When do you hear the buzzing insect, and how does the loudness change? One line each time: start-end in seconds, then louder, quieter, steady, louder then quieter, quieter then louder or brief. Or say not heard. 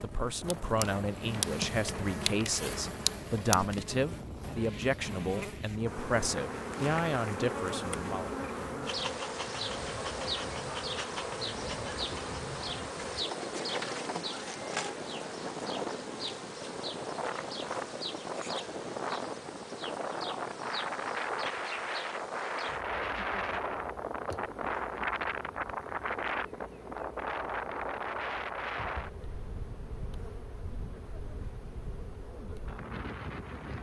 0.0-33.7 quieter.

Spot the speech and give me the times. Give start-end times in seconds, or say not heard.
0.0-8.3.